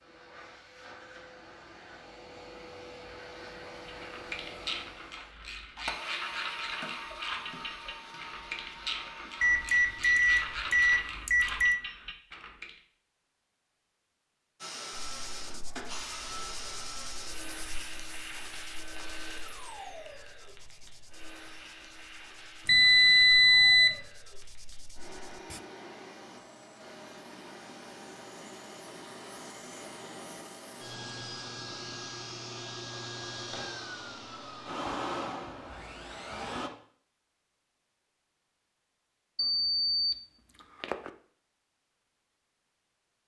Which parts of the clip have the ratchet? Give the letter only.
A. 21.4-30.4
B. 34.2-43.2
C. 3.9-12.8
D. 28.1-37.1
C.